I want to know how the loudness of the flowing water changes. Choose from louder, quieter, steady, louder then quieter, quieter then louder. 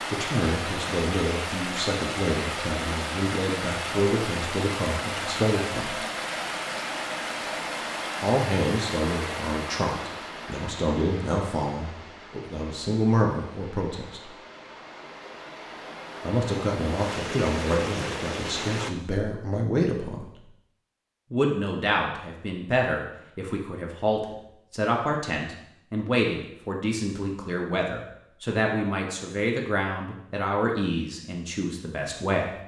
quieter then louder.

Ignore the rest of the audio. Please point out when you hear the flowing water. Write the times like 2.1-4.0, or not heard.
0.0-18.9.